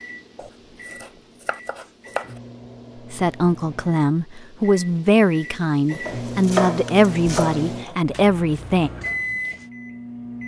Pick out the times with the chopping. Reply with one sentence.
The chopping can be heard from 0.3 to 2.2 s and from 6.0 to 7.7 s.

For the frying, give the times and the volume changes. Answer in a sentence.
The frying can't be heard in this clip.